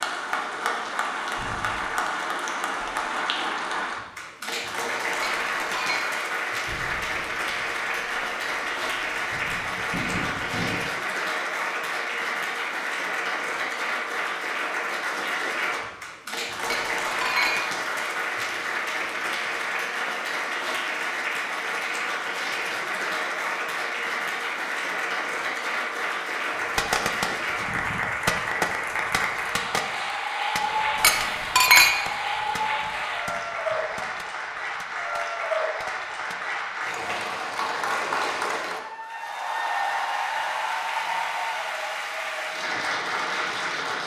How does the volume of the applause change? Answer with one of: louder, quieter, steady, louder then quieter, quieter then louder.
steady.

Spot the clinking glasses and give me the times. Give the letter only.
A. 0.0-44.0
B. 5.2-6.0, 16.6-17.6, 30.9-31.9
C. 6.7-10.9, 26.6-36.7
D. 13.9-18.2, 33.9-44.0
B.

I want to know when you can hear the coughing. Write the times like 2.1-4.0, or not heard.
not heard.